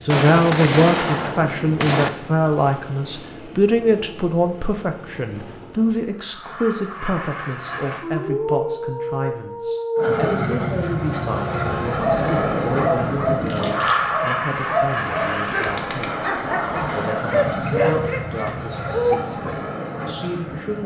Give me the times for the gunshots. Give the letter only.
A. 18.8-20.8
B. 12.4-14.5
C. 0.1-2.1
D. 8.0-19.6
C.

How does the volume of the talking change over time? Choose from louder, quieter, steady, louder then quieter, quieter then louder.
quieter.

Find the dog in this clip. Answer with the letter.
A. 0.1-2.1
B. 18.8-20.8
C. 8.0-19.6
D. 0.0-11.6
C.